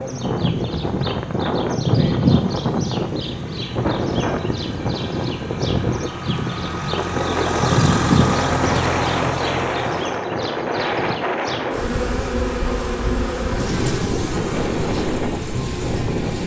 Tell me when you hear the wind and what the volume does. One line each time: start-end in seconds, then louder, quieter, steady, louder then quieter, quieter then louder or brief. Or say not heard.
0.0-16.4 steady.